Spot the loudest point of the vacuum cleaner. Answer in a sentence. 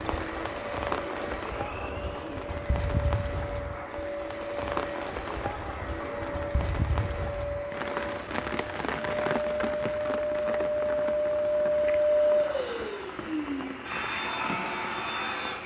The loudest moment of the vacuum cleaner is at 12 seconds.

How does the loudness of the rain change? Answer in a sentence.
The volume of the rain goes down.